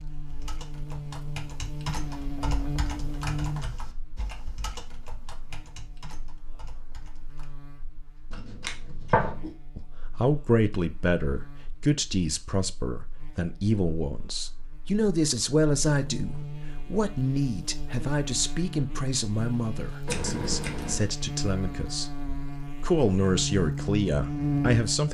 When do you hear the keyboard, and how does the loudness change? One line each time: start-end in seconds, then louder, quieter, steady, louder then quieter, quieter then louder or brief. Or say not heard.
0.2-7.5 quieter.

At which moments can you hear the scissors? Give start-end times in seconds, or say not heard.
8.3-9.5, 20.1-21.1.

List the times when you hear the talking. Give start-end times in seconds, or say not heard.
9.8-25.0.